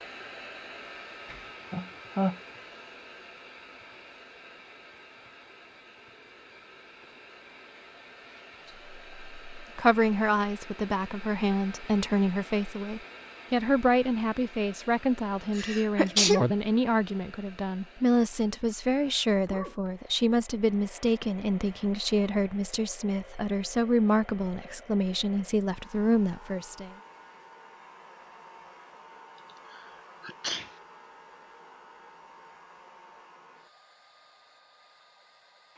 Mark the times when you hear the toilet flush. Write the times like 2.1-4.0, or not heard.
not heard.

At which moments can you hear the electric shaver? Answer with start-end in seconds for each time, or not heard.
not heard.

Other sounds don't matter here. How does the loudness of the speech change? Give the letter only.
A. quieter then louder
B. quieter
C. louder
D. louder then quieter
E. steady
E.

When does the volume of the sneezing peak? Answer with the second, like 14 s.
16 s.